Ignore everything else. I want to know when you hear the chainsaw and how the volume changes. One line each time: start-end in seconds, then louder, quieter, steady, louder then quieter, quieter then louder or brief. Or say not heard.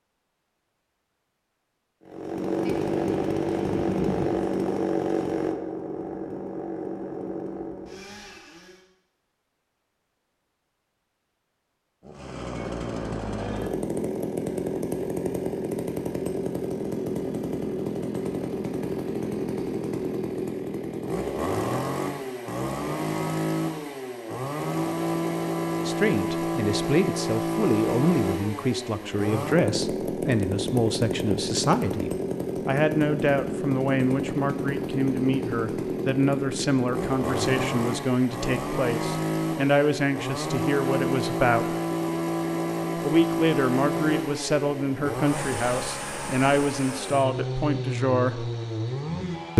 2.0-8.8 quieter
12.0-49.5 steady.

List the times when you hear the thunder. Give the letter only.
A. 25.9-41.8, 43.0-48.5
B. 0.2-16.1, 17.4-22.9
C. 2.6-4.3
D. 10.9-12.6
C.